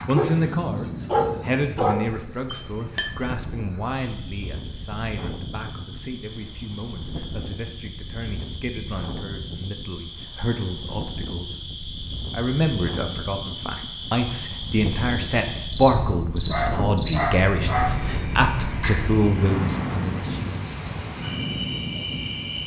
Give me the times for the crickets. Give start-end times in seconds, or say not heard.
0.0-22.6.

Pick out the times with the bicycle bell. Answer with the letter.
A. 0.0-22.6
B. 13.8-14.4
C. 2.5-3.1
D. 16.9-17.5
C.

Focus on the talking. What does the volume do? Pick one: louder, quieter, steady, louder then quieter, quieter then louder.
quieter then louder.